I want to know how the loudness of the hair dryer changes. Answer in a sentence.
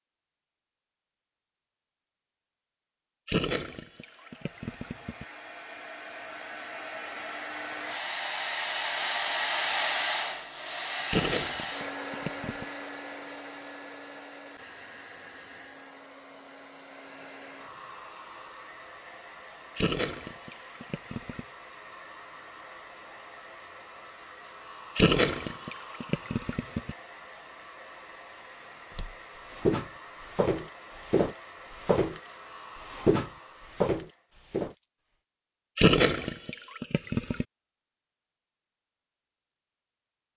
The volume of the hair dryer goes down.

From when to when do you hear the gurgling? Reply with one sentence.
The gurgling can be heard from 3.2 to 5.2 s, from 11.1 to 12.7 s, from 19.8 to 21.4 s, from 24.9 to 26.9 s and from 35.8 to 37.5 s.